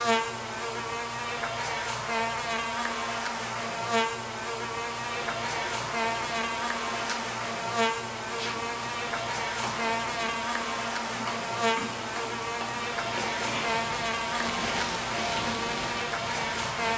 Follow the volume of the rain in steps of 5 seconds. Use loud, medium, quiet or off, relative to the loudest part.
off, medium, loud, loud.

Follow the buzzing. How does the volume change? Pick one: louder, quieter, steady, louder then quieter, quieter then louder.
steady.